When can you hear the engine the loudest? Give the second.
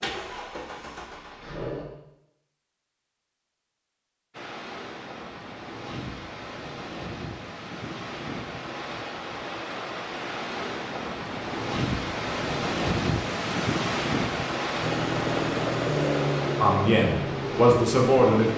16 s.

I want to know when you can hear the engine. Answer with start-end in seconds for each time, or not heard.
0.0-1.9, 14.8-18.5.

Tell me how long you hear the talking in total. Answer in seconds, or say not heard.
2 s.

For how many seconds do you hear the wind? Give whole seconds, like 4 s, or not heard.
14 s.